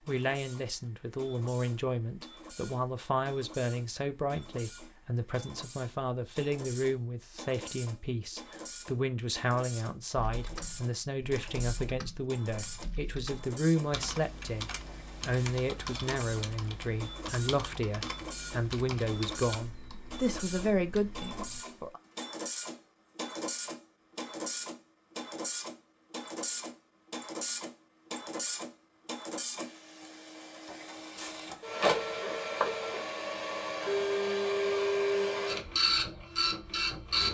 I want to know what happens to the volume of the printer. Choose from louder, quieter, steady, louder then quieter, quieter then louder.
louder.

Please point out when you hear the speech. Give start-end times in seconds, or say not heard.
0.1-22.0.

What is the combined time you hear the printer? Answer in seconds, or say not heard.
37 s.